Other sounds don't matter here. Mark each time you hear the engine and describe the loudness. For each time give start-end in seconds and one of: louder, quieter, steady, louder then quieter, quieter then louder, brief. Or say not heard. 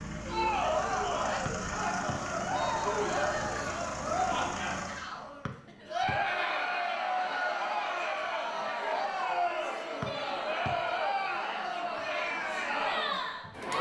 0.0-5.1 steady.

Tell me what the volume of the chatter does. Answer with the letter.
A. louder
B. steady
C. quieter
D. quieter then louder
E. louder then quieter
B.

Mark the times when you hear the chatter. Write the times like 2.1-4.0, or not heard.
0.1-13.7.